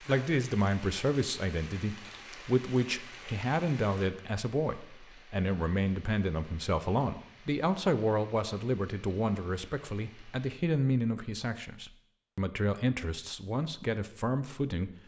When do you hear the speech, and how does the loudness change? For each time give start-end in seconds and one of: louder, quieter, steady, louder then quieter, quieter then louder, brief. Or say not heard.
0.1-14.9 steady.